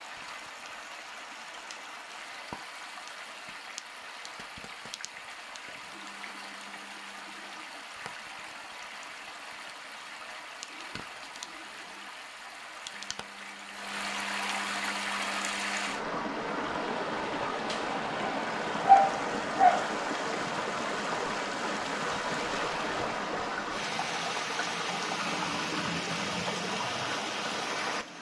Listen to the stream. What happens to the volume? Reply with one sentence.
The volume of the stream goes up.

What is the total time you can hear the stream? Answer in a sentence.
You can hear the stream for 28 seconds altogether.